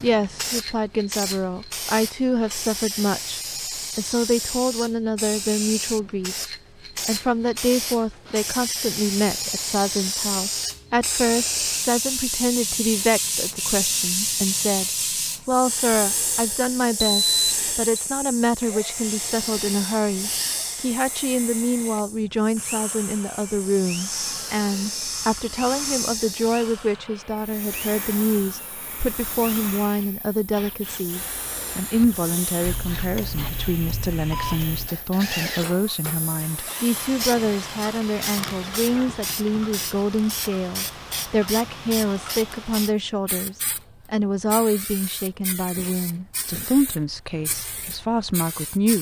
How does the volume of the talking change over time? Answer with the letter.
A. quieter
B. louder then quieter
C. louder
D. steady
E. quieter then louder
D.